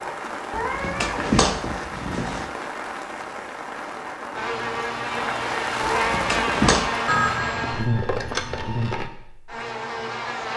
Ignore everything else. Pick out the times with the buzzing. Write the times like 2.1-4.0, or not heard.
4.3-10.5.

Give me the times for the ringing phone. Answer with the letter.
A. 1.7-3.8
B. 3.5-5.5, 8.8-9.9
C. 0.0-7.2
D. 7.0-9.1
D.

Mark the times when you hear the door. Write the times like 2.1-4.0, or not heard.
not heard.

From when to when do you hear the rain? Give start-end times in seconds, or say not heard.
0.0-7.2.